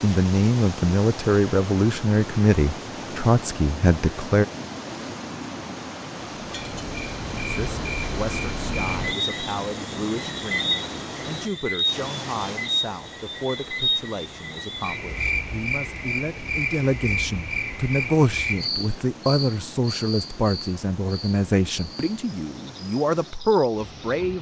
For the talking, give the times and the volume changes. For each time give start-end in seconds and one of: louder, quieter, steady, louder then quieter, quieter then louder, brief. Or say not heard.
0.0-4.5 steady
7.4-24.3 louder.